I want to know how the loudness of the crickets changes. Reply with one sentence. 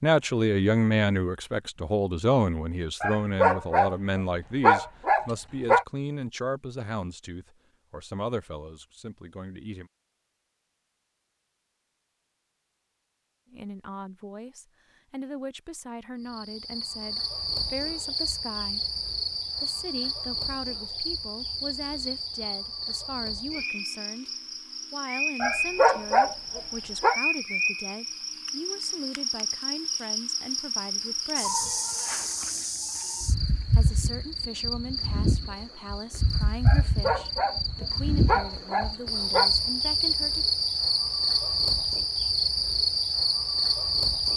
The volume of the crickets goes up.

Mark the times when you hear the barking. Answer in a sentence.
You can hear the barking from 3.0 to 5.8 s, from 25.4 to 27.2 s and from 36.6 to 39.5 s.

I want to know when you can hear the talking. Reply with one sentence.
The talking can be heard from 0.0 to 9.9 s, from 13.5 to 18.9 s, from 19.6 to 24.3 s, from 24.9 to 31.7 s and from 33.8 to 40.5 s.